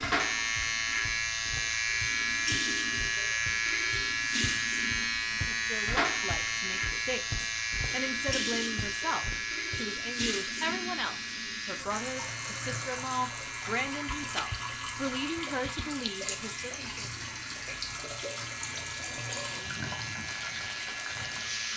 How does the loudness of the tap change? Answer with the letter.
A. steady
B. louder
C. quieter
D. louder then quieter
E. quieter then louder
A.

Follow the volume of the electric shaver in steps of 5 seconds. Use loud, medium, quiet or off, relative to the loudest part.
loud, loud, medium, quiet, medium.